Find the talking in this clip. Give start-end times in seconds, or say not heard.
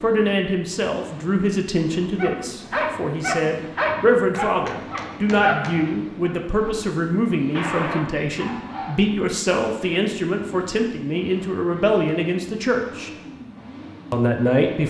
0.0-13.1, 14.1-14.8.